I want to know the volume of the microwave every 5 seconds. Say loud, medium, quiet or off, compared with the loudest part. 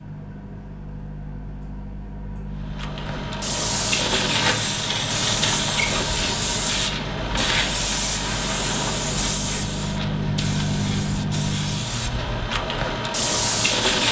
medium, medium, loud.